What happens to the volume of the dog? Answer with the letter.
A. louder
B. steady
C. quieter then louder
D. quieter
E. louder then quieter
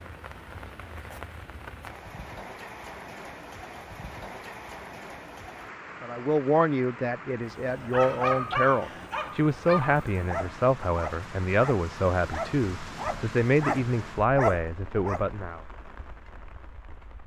C.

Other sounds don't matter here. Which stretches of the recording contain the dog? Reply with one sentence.
The dog can be heard from 7.8 to 15.2 s.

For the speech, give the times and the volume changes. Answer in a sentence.
You can hear the speech from 6.0 to 15.6 s, at a steady volume.